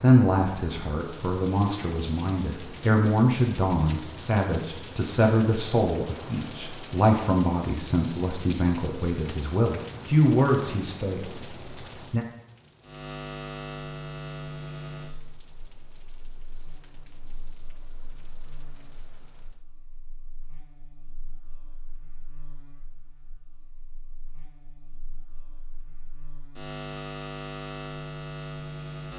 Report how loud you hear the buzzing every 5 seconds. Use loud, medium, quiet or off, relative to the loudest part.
off, off, loud, quiet, quiet, loud.